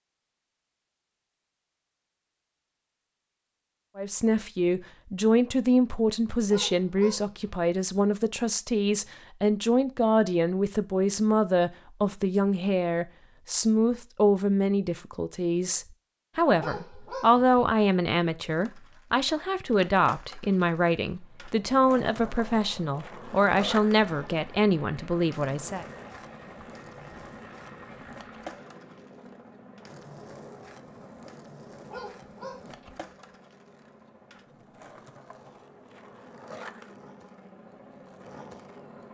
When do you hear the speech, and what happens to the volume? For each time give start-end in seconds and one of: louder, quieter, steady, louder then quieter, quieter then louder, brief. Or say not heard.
4.0-25.9 steady.